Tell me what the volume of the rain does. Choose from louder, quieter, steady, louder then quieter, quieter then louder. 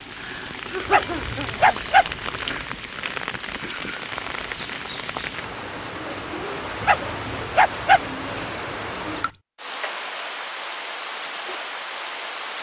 steady.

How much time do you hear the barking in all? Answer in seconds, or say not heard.
3 s.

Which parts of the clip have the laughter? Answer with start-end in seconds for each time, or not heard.
0.1-2.1.